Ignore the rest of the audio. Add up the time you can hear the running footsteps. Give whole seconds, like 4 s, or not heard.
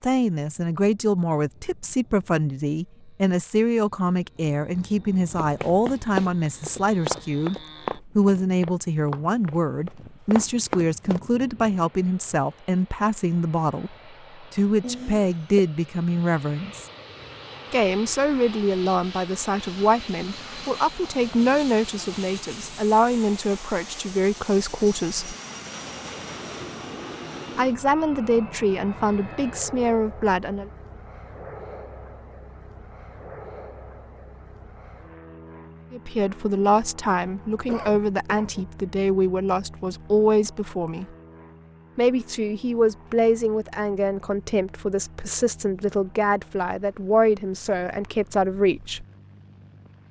6 s.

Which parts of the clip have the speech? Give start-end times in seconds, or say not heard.
0.0-16.9, 17.7-25.4, 27.6-30.7, 35.9-41.0, 42.0-49.0.